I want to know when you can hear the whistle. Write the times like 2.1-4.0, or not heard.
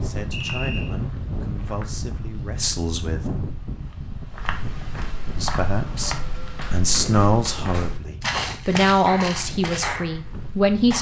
0.3-0.9.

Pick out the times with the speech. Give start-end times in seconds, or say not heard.
0.0-3.4, 5.3-10.9.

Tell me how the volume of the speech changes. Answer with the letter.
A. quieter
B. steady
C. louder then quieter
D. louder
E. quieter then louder
D.